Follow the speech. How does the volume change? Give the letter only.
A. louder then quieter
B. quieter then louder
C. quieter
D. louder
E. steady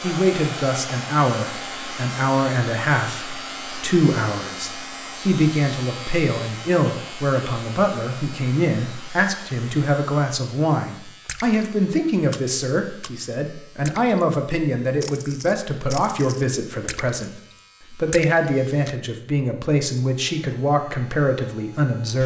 E.